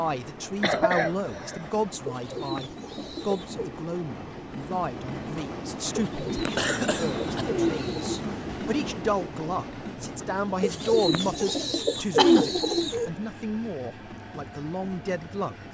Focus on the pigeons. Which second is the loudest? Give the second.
12 s.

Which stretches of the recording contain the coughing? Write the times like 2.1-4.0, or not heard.
0.6-1.7, 6.3-7.5, 11.7-12.5.